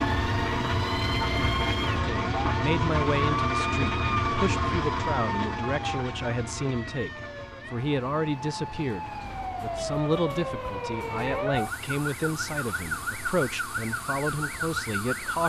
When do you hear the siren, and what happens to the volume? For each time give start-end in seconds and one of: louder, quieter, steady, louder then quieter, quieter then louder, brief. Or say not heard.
0.0-15.4 quieter then louder.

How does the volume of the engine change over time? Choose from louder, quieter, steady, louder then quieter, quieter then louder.
quieter.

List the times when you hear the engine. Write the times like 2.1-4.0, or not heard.
0.0-15.4.